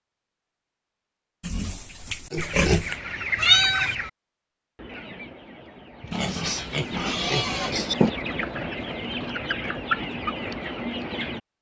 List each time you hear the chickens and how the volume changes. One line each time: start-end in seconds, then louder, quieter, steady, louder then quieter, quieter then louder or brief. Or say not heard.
2.4-4.1 brief
4.8-11.4 louder.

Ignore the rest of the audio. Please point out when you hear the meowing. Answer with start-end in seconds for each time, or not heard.
3.4-4.0, 6.0-8.0.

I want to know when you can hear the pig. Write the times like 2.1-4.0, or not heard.
1.4-3.0, 6.1-8.1.